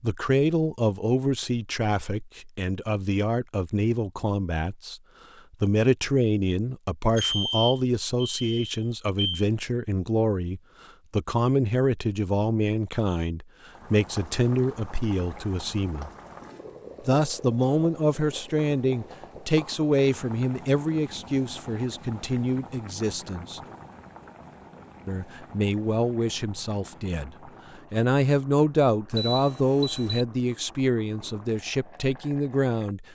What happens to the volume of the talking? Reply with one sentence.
The volume of the talking stays about the same.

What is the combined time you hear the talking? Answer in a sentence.
You can hear the talking for 30 seconds altogether.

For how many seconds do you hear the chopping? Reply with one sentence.
The chopping can't be heard in this clip.